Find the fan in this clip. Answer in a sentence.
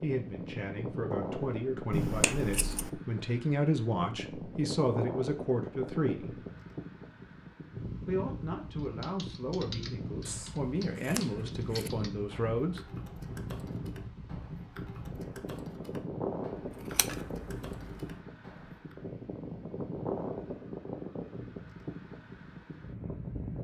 The fan can be heard from 0.0 to 23.5 s.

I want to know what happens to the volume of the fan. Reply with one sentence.
The loudness of the fan stays about the same.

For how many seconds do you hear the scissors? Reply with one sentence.
You can hear the scissors for 4 seconds altogether.